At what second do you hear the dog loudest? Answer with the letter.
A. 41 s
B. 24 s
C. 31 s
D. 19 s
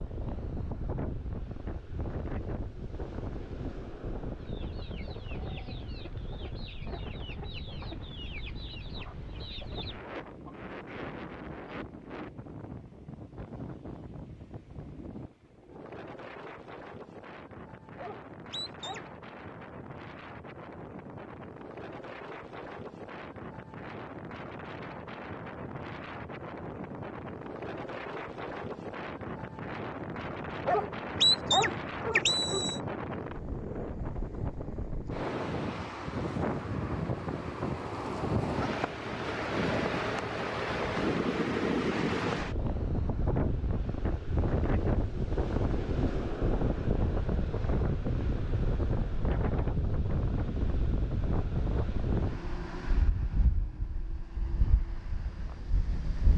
C.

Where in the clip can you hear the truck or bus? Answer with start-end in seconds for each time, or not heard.
not heard.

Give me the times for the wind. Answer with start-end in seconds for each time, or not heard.
0.0-56.3.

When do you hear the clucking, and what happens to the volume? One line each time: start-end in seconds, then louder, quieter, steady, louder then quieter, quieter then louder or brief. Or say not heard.
4.3-10.6 steady.